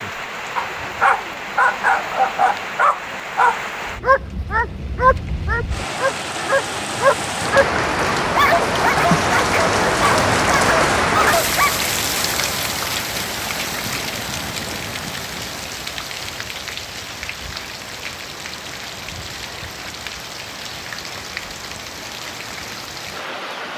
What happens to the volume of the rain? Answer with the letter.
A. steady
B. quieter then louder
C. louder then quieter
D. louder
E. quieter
C.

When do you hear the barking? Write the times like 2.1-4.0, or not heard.
0.6-11.8.